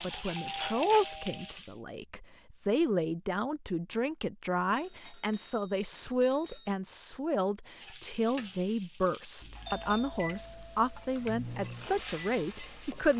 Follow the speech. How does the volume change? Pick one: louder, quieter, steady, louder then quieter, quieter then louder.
steady.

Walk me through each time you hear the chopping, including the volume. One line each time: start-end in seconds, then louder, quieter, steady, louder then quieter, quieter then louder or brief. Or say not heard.
not heard.